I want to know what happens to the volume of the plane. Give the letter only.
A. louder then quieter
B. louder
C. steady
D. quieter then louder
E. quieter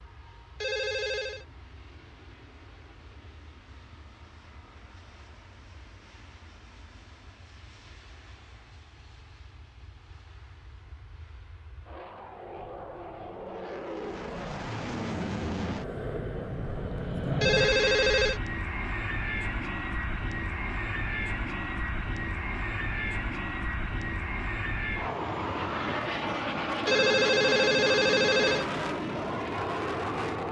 B.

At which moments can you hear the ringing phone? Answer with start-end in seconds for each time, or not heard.
0.6-1.4, 17.4-18.4, 26.9-28.6.